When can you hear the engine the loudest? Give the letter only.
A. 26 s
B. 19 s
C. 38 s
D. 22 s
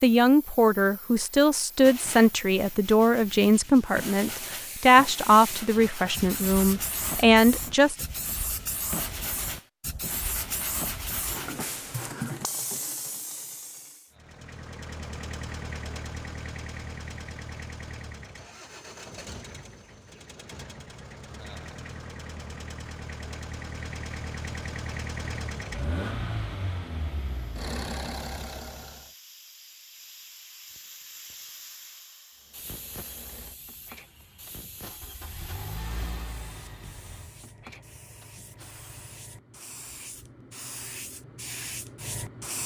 A.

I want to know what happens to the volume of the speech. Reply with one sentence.
The loudness of the speech stays about the same.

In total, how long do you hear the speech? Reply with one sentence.
You can hear the speech for 8 seconds altogether.